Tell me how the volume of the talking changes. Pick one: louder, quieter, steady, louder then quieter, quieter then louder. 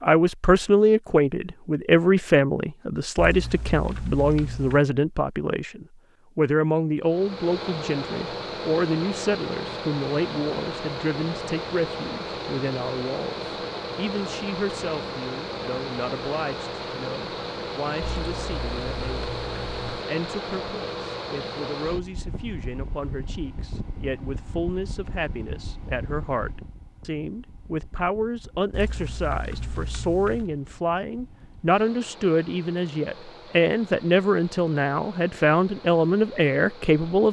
quieter then louder.